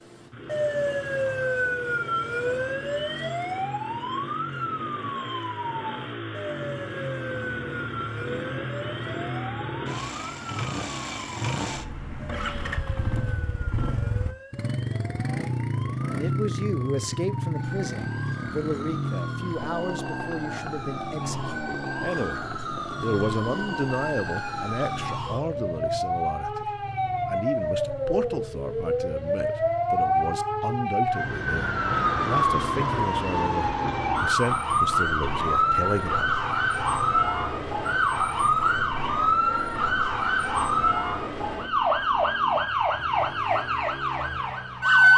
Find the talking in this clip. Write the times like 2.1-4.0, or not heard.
16.1-36.3.